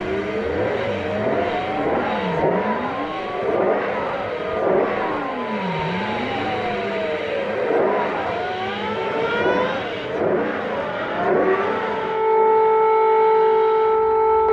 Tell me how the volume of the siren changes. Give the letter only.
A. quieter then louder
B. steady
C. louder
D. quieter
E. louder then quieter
C.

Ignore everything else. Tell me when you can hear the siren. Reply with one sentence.
The siren can be heard from 0.0 to 14.4 s.